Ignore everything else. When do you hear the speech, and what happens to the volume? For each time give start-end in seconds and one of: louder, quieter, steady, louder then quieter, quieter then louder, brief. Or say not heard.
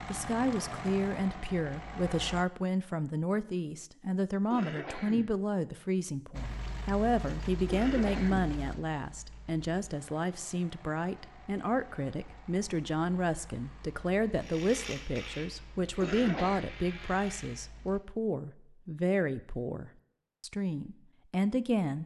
0.1-22.0 steady.